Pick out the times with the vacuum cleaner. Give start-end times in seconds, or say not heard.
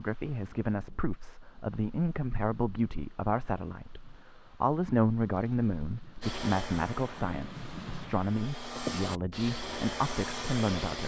6.2-11.0.